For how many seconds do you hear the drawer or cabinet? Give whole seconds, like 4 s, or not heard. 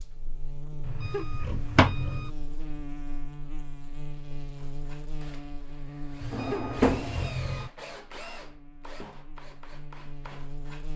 2 s.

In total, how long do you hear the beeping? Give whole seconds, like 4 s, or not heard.
3 s.